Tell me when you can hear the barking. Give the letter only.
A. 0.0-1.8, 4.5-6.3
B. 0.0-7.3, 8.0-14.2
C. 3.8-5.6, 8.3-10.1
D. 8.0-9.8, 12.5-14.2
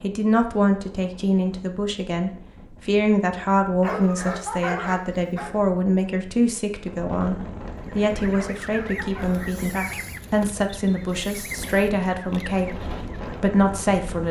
C.